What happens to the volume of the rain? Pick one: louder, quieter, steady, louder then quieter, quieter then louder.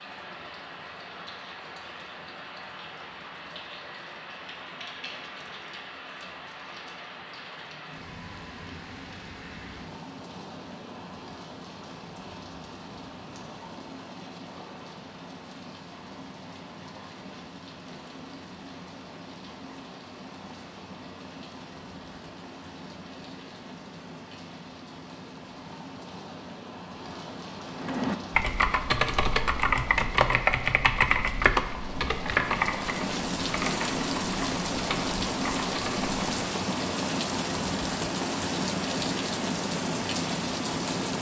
louder.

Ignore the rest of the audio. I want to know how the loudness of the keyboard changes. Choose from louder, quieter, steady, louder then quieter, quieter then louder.
quieter.